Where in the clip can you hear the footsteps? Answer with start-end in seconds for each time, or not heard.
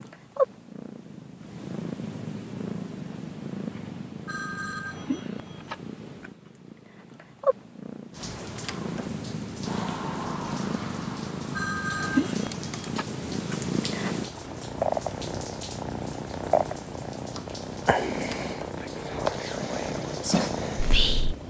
not heard.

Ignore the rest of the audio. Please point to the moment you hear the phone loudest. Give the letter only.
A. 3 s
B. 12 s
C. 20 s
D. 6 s
B.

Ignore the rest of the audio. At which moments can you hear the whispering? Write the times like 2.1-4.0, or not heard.
18.8-21.4.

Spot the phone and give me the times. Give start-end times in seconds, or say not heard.
4.2-6.3, 11.6-13.6.